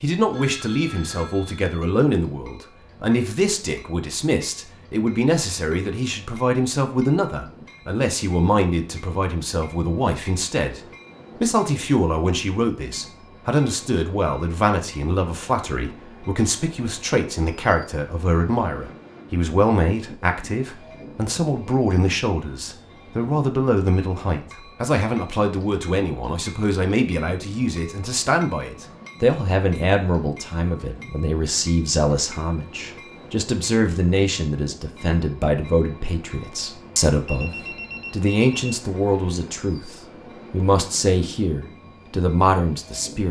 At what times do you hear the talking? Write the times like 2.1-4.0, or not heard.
0.0-10.8, 11.4-37.5, 38.1-43.2.